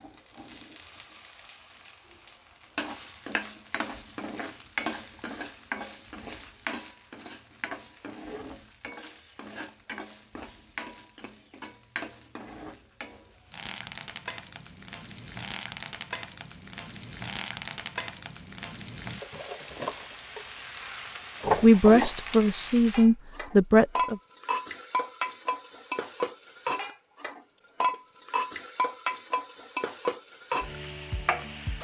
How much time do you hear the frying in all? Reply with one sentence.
The frying can be heard for 32 seconds in total.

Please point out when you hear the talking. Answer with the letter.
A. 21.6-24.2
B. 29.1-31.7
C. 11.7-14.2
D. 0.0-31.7
A.